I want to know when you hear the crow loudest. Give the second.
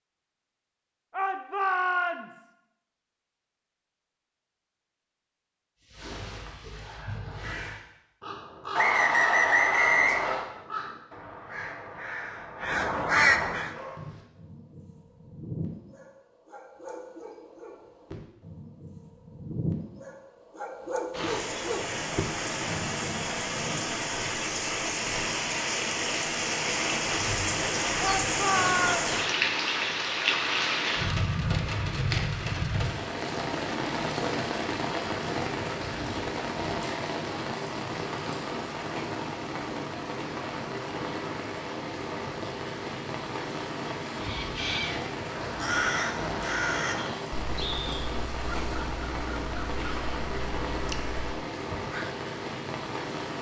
13 s.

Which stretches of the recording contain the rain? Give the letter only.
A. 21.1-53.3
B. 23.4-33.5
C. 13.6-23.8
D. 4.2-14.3
A.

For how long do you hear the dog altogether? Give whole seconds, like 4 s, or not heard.
10 s.